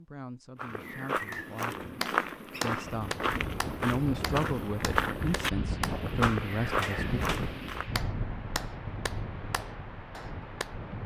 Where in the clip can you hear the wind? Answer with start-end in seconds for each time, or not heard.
2.9-11.0.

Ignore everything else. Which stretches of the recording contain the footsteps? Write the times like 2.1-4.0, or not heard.
0.6-7.8.